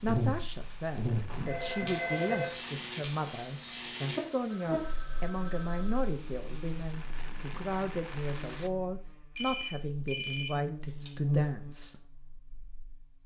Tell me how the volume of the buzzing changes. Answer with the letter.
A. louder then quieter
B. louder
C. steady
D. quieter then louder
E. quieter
D.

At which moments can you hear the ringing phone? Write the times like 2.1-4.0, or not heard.
1.2-2.8, 4.5-6.1, 9.3-11.1.